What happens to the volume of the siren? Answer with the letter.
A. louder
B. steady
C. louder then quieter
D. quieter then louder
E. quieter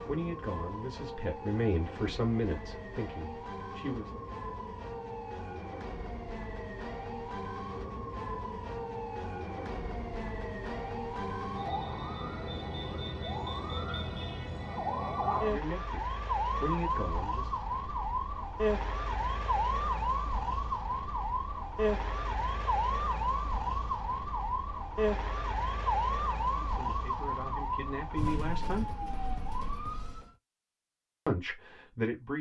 A.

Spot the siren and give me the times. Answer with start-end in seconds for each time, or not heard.
0.0-30.3.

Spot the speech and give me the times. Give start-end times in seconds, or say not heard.
0.1-4.2, 15.2-17.6, 26.6-28.9, 31.2-32.3.